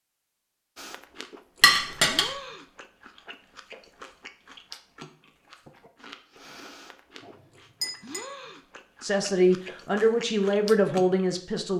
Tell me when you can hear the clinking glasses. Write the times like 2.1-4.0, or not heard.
1.6-2.3, 7.2-8.2.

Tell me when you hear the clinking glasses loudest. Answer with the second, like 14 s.
2 s.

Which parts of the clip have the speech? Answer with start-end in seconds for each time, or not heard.
9.0-11.7.